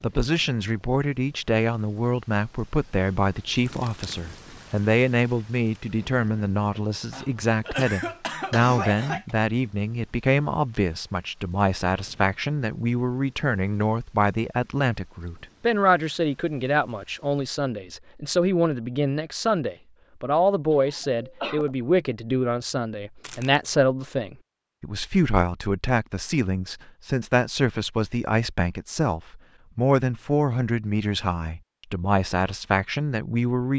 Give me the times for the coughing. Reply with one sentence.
You can hear the coughing from 7.1 to 9.3 s and from 20.7 to 21.8 s.